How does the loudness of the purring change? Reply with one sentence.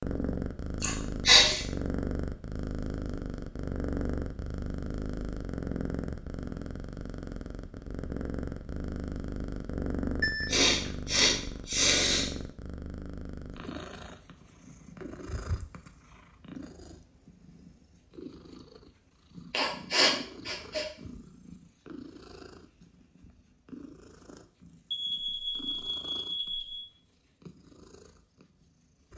The volume of the purring goes down.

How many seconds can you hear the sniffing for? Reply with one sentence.
The sniffing can be heard for 4 seconds in total.